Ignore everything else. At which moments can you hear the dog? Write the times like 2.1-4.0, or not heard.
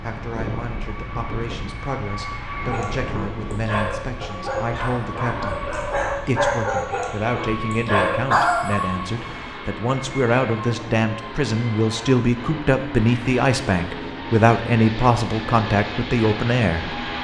2.7-9.3.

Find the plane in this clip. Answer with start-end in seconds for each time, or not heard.
0.0-17.1.